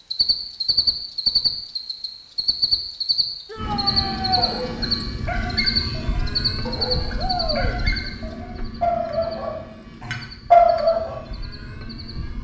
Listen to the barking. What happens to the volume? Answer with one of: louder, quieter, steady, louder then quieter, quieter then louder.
louder.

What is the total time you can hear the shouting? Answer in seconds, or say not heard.
2 s.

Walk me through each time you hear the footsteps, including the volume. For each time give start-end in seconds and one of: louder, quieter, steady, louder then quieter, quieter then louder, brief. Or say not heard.
not heard.